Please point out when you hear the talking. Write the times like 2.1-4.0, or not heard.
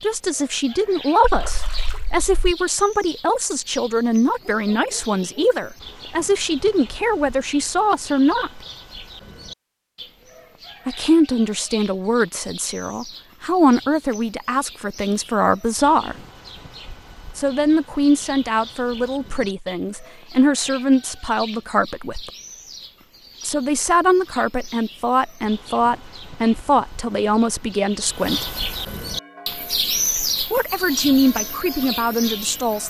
0.0-8.6, 10.8-16.1, 17.4-22.3, 23.4-28.5, 30.4-32.8.